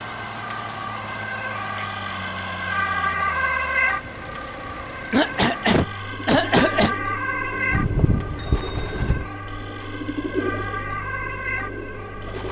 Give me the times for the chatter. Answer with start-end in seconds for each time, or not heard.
not heard.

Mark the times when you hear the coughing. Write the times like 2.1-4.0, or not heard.
5.1-7.0.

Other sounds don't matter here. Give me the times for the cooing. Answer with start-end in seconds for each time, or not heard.
6.0-12.4.